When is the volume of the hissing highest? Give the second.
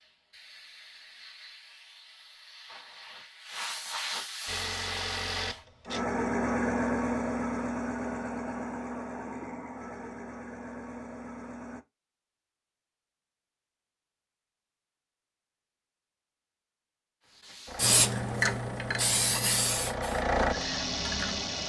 18 s.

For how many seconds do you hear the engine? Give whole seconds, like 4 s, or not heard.
11 s.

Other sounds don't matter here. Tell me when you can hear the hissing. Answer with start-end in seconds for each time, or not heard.
0.0-5.7, 17.6-21.4.